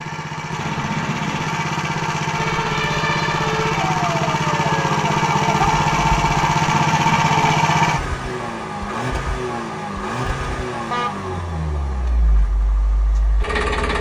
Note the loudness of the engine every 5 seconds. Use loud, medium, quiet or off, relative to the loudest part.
loud, loud, medium.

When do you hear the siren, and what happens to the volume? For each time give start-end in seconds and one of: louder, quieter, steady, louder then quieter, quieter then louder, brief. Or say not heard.
2.3-6.3 steady.